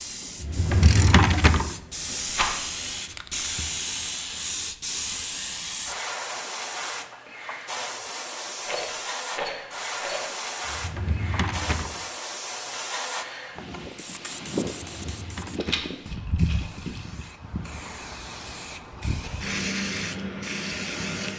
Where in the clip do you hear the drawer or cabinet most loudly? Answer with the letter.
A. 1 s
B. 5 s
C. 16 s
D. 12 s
A.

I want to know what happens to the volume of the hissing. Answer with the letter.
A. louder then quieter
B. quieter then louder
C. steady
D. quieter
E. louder
C.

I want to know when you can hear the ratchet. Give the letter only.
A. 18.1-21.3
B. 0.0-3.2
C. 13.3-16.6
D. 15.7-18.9
B.